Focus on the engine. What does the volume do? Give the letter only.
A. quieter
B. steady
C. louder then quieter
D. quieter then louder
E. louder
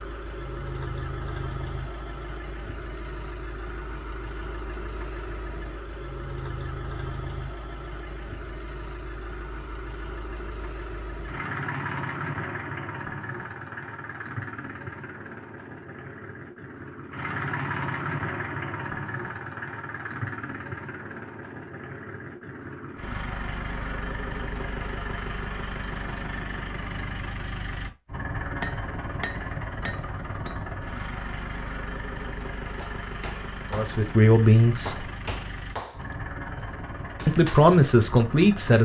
B.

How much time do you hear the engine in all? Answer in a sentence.
You can hear the engine for 39 seconds altogether.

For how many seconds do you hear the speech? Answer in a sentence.
You can hear the speech for 3 seconds altogether.